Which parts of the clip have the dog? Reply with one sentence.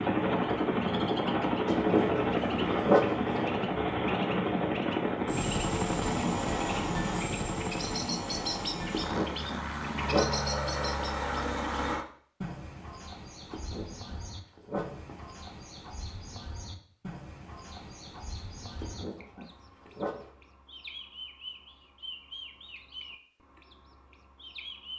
You can hear the dog from 1.6 to 3.4 s, from 8.9 to 10.3 s, from 13.5 to 15.2 s and from 18.8 to 20.2 s.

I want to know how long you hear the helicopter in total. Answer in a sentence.
The helicopter can be heard for 12 seconds in total.